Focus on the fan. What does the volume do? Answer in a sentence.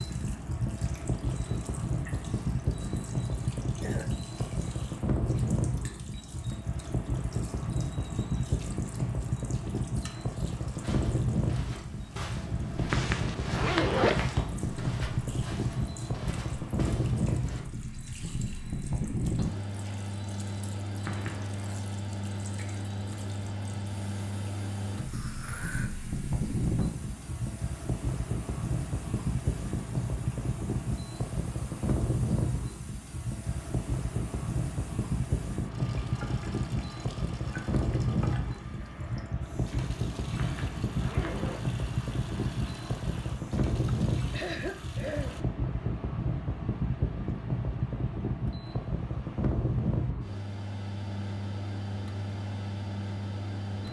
The loudness of the fan stays about the same.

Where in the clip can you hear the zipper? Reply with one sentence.
The zipper can be heard from 12.8 to 14.2 s, from 21.0 to 21.6 s and from 40.4 to 41.6 s.